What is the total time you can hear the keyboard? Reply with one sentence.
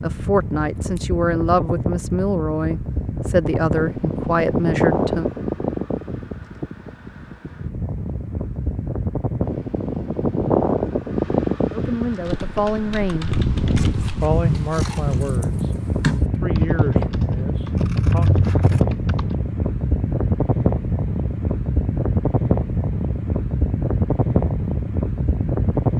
The keyboard can be heard for 7 seconds in total.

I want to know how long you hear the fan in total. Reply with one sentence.
You can hear the fan for 26 seconds altogether.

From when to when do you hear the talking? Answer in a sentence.
You can hear the talking from 0.0 to 5.2 s, from 11.7 to 13.3 s and from 14.2 to 18.3 s.